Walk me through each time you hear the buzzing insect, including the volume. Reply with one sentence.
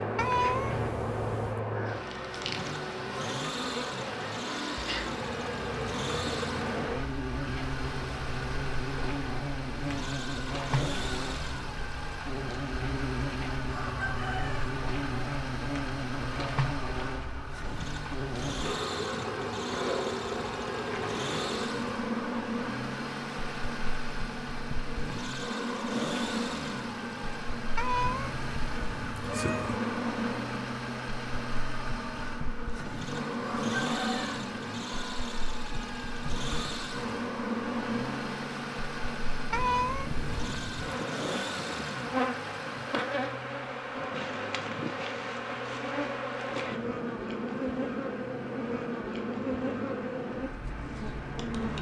You can hear the buzzing insect from 0.0 to 51.7 s, at a steady volume.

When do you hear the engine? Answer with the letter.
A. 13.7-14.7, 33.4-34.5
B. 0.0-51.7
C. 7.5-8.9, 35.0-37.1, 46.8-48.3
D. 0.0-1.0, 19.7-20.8
B.